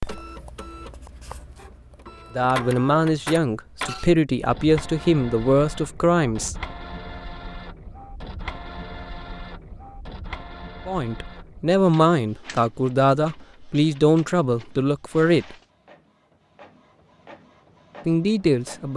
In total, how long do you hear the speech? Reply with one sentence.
The speech can be heard for 10 seconds in total.